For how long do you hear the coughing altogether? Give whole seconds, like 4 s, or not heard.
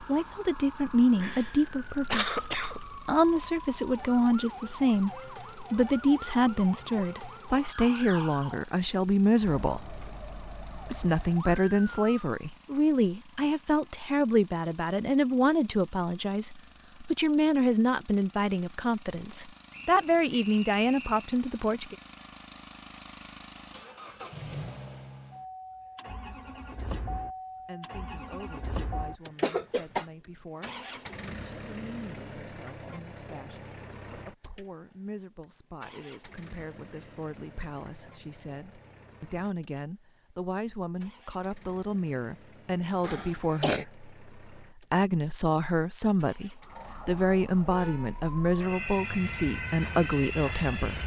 3 s.